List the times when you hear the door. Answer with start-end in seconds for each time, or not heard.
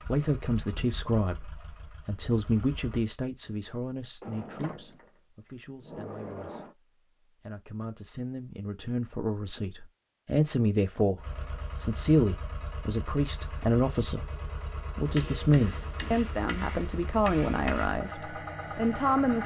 4.2-6.8.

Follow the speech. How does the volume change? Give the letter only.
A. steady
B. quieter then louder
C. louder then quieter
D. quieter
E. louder
B.